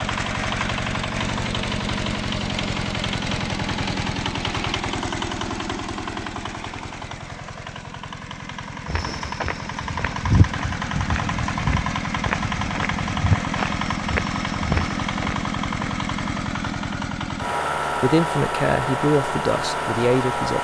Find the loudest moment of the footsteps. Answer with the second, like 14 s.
10 s.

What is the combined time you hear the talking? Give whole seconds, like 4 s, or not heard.
3 s.